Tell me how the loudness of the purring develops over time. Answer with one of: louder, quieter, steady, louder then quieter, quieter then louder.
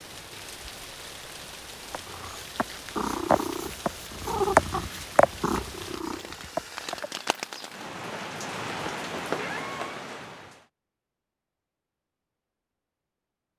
louder then quieter.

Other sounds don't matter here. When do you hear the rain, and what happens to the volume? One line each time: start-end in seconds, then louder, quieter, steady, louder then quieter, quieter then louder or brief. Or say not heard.
0.0-10.7 louder.